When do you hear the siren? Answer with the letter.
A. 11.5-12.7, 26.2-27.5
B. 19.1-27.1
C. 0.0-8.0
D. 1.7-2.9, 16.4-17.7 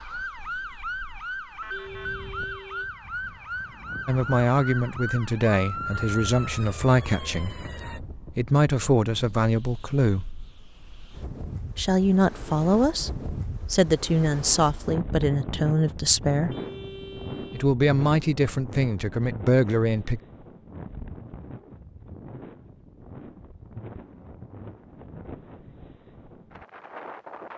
C.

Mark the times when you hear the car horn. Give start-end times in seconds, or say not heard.
1.7-2.9, 16.4-17.7.